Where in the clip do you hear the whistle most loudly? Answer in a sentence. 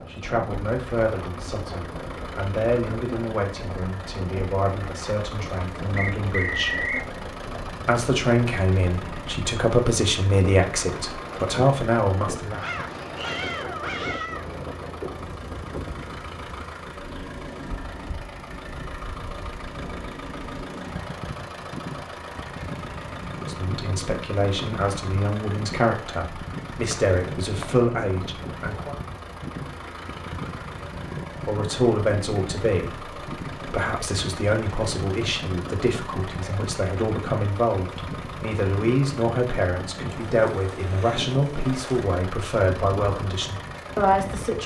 The volume of the whistle peaks at 7 seconds.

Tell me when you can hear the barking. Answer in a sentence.
The barking can be heard from 12.6 to 14.5 s.